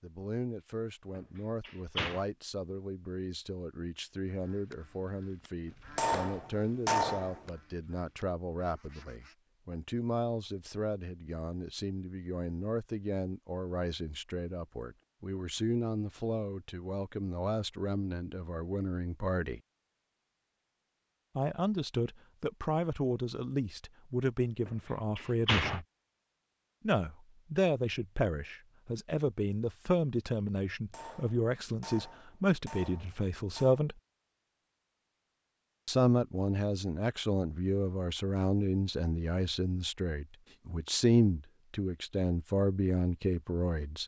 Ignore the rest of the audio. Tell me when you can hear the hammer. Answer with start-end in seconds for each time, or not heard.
6.0-7.5, 30.9-33.8.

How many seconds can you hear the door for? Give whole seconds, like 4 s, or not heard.
2 s.